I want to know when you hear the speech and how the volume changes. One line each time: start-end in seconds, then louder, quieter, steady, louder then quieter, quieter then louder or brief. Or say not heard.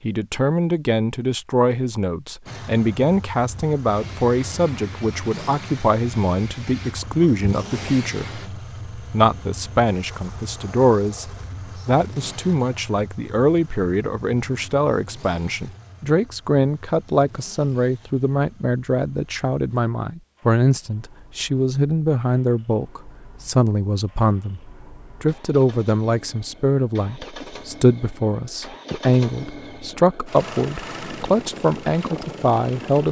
0.0-33.0 steady.